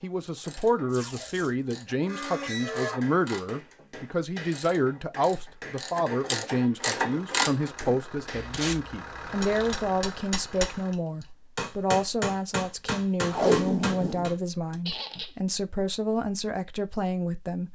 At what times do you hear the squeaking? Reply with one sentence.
The squeaking can be heard from 2.0 to 3.0 s and from 14.8 to 15.3 s.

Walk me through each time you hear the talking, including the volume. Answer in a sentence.
The talking can be heard from 0.0 to 17.7 s, at a steady volume.